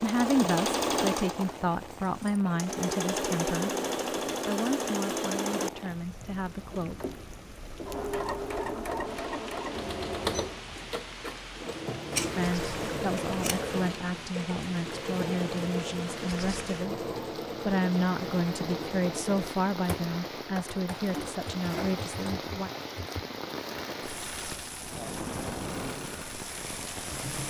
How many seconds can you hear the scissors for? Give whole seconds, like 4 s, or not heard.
2 s.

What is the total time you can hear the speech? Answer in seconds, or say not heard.
16 s.